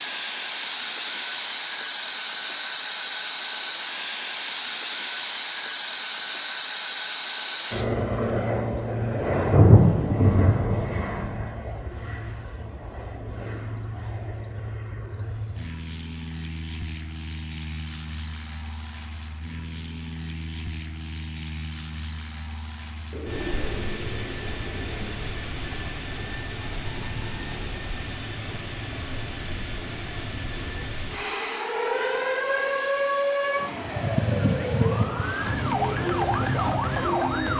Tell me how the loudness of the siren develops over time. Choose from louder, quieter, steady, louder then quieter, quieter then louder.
steady.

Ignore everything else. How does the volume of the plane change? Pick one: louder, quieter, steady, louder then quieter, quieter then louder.
quieter.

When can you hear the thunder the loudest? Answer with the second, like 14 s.
10 s.